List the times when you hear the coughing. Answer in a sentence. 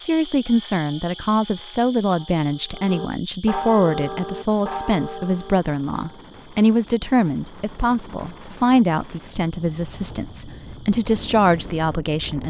The coughing can't be heard in this clip.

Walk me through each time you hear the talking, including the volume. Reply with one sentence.
You can hear the talking from 0.0 to 12.4 s, at a steady volume.